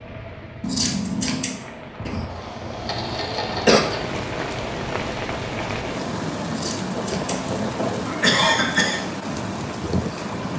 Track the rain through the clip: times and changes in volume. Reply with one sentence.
The rain can be heard from 0.0 to 10.5 s, getting louder.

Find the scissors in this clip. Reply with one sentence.
The scissors can be heard from 0.6 to 1.6 s and from 6.5 to 8.2 s.